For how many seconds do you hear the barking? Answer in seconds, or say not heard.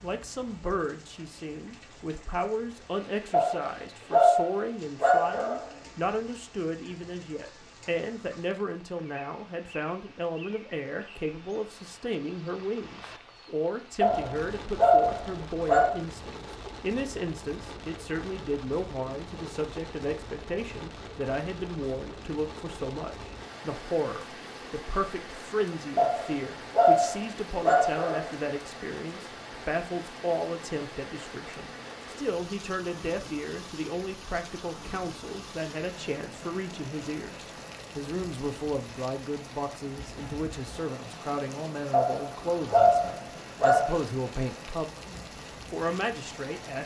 9 s.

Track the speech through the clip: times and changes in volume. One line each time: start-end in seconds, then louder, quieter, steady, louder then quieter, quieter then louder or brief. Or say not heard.
0.0-44.9 steady
45.7-46.8 brief.